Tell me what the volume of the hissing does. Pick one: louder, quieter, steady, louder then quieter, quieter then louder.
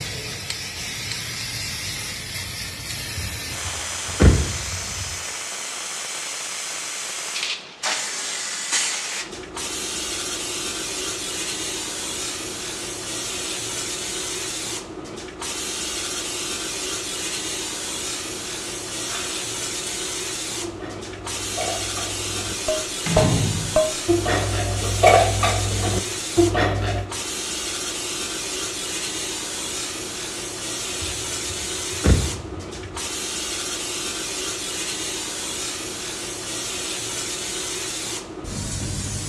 steady.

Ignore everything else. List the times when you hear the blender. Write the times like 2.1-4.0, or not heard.
not heard.